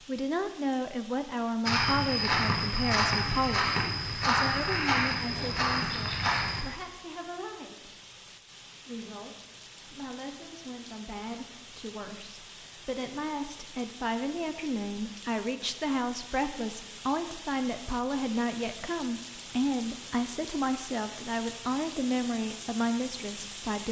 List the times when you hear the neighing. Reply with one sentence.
The neighing can't be heard in this clip.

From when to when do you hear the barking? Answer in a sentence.
The barking can't be heard in this clip.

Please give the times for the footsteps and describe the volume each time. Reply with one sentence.
The footsteps can be heard from 1.6 to 6.7 s, at a steady volume.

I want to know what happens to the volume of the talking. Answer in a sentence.
The volume of the talking goes down, then up.